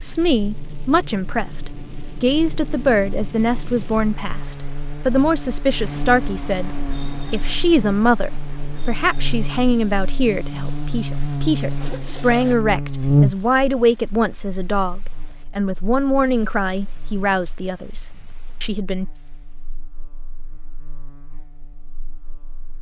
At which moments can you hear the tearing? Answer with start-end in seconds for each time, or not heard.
not heard.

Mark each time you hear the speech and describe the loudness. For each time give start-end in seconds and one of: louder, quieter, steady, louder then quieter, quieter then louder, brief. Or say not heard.
0.0-19.1 steady.